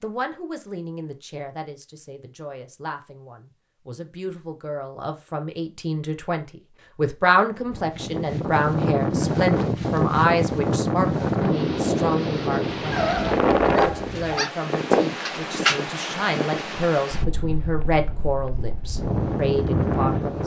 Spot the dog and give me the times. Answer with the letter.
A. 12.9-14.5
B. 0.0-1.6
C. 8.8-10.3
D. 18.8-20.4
A.